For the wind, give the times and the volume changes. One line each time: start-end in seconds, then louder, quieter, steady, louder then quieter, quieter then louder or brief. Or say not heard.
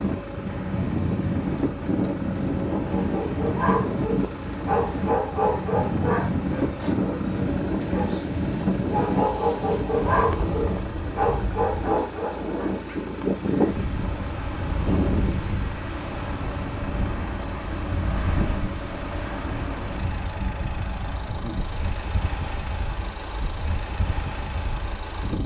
0.0-25.4 quieter.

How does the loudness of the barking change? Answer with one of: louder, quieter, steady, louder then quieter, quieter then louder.
quieter then louder.